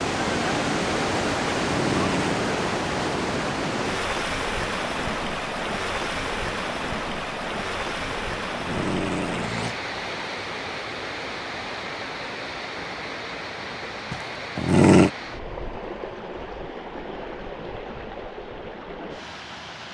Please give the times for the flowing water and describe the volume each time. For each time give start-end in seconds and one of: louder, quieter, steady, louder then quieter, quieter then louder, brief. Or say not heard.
0.0-19.9 quieter.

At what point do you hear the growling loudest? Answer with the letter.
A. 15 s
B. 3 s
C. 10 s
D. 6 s
A.